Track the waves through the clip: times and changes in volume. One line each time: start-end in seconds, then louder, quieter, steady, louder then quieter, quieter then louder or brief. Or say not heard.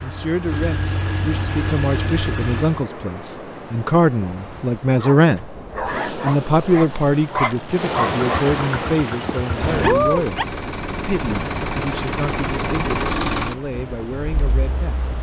0.0-15.1 louder then quieter.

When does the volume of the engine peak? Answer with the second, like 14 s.
13 s.